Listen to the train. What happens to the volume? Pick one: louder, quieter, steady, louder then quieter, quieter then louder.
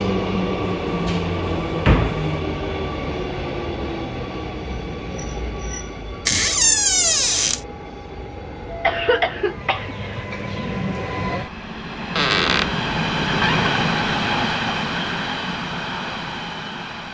quieter then louder.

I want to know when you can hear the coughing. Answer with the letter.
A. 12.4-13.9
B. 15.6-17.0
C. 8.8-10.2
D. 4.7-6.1
C.